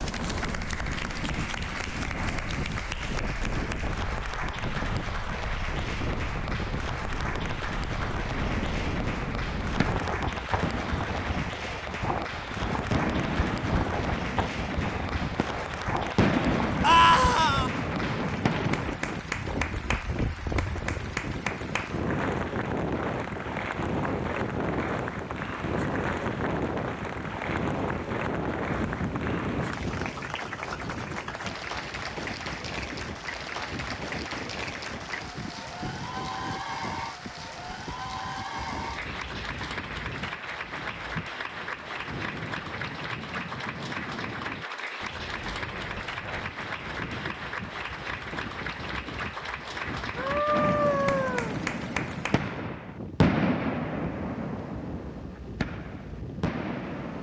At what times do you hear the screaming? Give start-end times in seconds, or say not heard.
16.8-17.7, 50.1-51.5.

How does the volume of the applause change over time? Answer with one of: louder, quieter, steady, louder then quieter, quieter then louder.
steady.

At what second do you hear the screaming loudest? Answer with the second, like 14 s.
17 s.